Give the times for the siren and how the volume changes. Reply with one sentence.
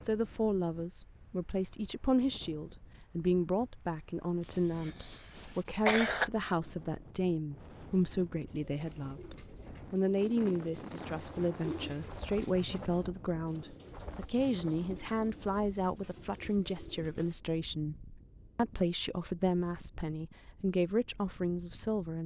The siren can't be heard in this clip.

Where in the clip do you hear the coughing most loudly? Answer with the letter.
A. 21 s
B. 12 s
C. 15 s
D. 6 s
D.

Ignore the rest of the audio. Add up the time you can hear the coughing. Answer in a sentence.
You can hear the coughing for 3 seconds altogether.